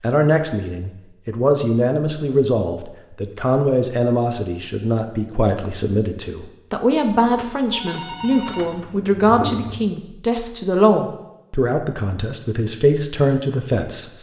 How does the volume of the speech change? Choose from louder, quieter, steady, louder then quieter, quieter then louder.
steady.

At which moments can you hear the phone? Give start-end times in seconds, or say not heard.
7.3-8.9.